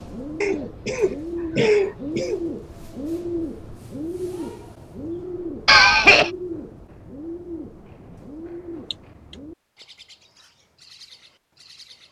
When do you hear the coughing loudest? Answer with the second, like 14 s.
6 s.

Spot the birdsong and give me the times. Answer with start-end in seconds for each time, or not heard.
0.0-12.0.